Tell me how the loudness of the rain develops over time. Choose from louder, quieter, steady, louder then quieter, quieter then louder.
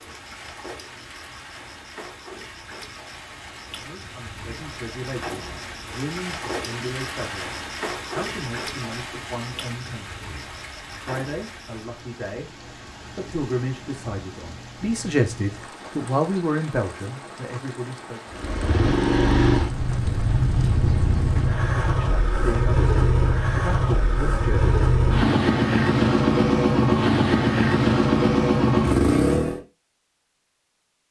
louder then quieter.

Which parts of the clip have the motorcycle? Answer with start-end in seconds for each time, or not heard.
18.3-29.6.